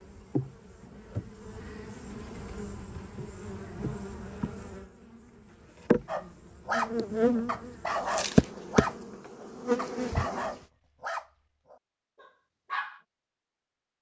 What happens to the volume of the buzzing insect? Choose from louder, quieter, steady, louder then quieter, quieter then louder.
louder.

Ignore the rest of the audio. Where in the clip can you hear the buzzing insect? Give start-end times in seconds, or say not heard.
0.0-10.7.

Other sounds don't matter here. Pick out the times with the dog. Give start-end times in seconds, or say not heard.
6.0-13.0.